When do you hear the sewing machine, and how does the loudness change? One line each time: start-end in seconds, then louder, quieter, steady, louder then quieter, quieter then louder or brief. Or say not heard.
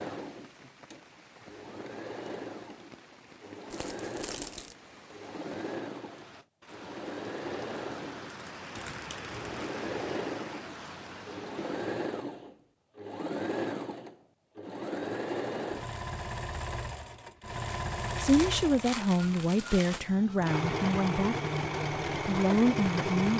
0.0-23.3 louder.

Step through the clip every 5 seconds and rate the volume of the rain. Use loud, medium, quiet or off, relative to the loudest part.
medium, loud, loud, off, off.